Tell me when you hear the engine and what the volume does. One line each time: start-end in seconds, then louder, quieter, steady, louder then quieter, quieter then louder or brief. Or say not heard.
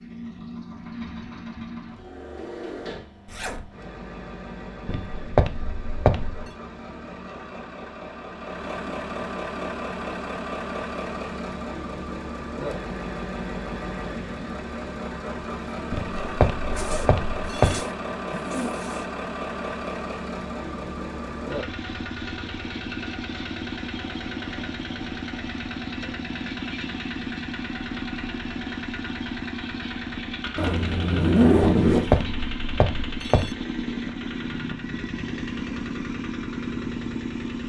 0.0-37.6 louder.